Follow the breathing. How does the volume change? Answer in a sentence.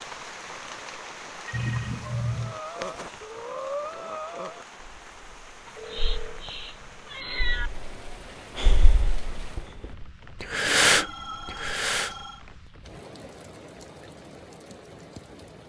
The volume of the breathing goes down, then up.